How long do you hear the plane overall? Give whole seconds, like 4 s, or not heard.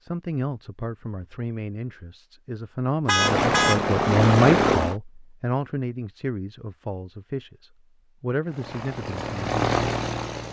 4 s.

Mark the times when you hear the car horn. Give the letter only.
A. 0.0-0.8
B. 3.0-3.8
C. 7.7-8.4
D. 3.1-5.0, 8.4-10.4
B.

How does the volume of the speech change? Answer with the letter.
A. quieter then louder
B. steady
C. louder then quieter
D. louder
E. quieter
C.